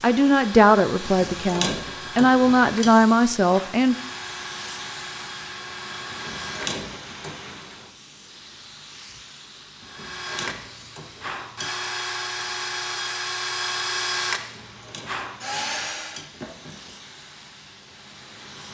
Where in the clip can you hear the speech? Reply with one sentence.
You can hear the speech from 0.0 to 4.0 s.